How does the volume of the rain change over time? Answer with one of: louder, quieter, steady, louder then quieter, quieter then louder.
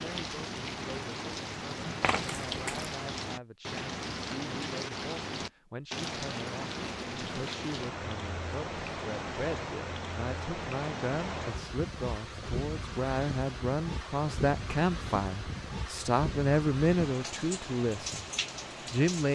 steady.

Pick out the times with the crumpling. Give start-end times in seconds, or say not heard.
2.0-2.9.